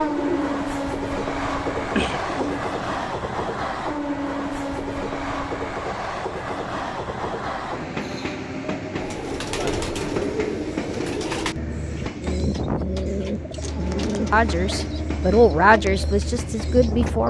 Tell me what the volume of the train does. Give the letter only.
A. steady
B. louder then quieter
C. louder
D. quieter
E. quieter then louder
D.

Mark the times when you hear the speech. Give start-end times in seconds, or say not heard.
14.3-17.2.